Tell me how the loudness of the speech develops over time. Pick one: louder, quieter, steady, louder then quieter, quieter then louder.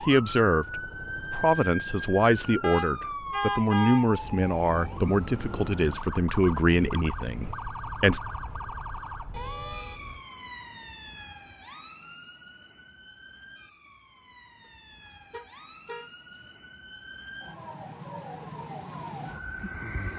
steady.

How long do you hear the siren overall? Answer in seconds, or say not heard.
20 s.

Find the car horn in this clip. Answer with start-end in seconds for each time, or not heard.
2.6-4.0, 9.3-10.2, 15.3-16.4.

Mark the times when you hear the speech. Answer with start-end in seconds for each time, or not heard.
0.1-8.2.